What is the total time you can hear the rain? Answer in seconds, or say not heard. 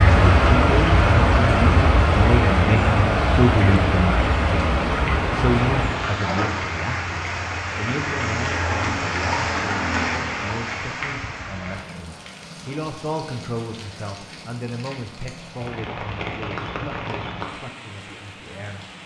19 s.